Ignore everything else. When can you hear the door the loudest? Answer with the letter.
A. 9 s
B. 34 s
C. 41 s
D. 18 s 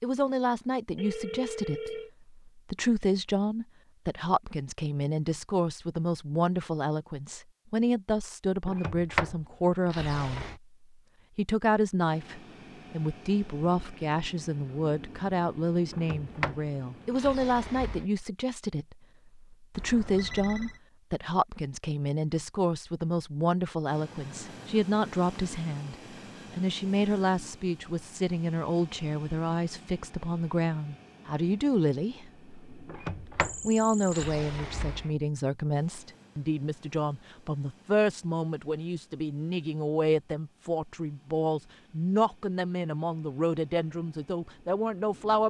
A.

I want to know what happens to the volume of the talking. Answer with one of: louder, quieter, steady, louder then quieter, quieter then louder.
steady.